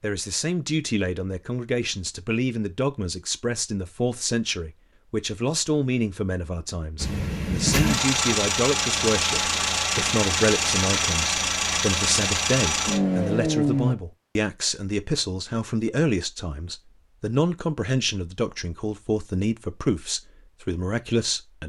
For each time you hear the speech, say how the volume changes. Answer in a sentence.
The speech can be heard from 0.0 to 21.6 s, at a steady volume.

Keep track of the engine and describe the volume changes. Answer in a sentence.
The loudness of the engine stays about the same.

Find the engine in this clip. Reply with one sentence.
You can hear the engine from 7.0 to 13.9 s.